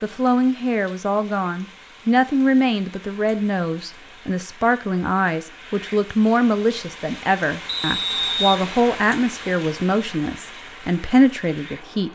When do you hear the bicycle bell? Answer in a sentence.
You can't hear the bicycle bell here.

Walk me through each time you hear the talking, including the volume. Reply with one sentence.
You can hear the talking from 0.0 to 12.0 s, at a steady volume.